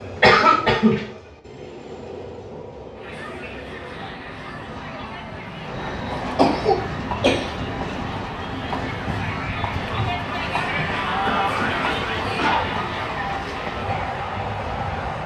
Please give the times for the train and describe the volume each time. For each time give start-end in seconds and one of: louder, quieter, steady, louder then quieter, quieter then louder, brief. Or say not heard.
0.0-15.2 louder.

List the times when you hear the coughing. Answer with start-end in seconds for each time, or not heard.
0.2-1.1, 6.3-7.5, 10.7-12.7.